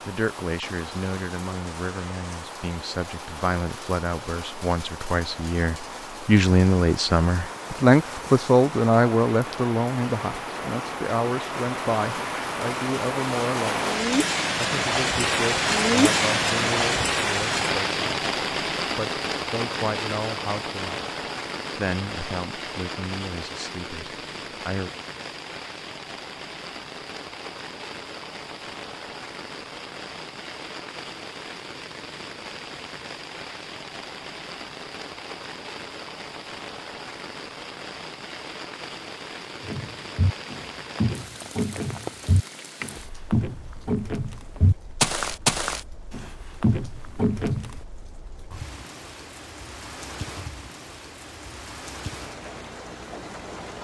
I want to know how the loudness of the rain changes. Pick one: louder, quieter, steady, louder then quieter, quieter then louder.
louder then quieter.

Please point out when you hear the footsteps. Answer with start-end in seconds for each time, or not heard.
39.6-47.7.